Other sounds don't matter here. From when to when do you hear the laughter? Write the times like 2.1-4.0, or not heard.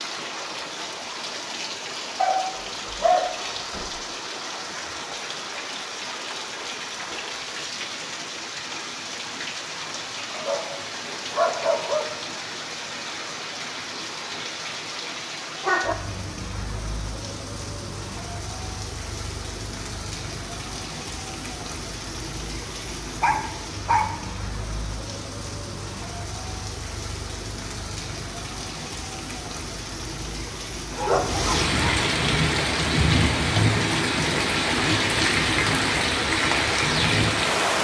not heard.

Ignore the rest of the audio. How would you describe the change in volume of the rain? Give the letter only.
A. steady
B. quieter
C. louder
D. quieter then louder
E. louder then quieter
C.